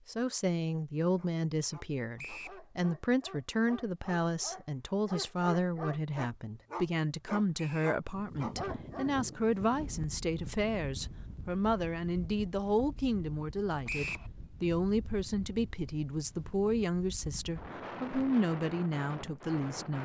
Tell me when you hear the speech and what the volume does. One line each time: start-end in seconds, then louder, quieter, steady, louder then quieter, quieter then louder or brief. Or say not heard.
0.1-20.0 steady.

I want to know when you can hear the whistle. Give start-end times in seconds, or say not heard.
2.1-2.6, 7.5-8.0, 13.8-14.3.